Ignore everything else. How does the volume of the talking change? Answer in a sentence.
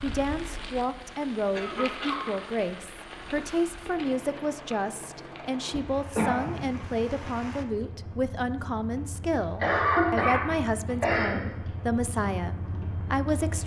The volume of the talking stays about the same.